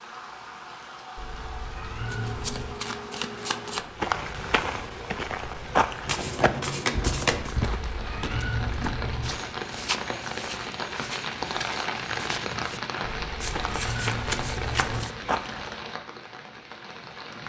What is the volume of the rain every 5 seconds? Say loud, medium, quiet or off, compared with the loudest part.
medium, medium, loud, medium.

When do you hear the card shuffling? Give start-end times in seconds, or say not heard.
2.0-3.9, 6.0-7.5, 13.4-15.1.